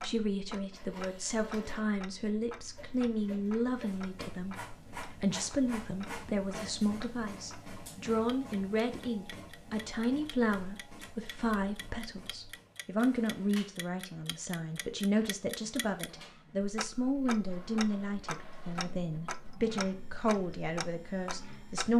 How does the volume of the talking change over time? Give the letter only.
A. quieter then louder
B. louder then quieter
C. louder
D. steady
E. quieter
D.